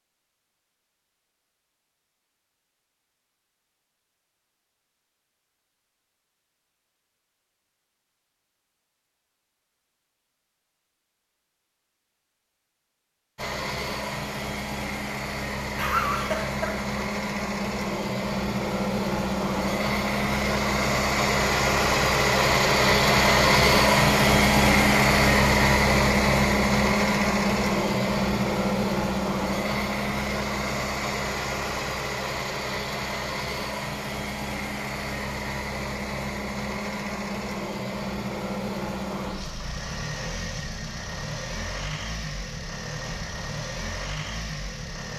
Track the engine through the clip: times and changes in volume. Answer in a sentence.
The engine can be heard from 13.3 to 45.1 s, getting louder then quieter.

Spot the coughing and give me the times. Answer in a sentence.
The coughing can be heard from 15.8 to 16.9 s.